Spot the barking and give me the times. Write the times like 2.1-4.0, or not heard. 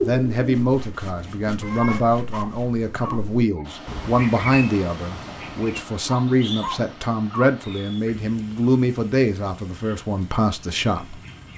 1.8-3.6, 6.0-7.5.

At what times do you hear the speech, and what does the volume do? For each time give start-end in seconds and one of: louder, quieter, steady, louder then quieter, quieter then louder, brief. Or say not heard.
0.0-11.5 steady.